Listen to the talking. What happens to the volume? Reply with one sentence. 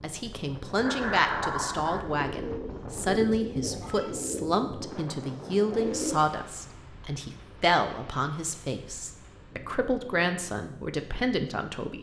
The volume of the talking stays about the same.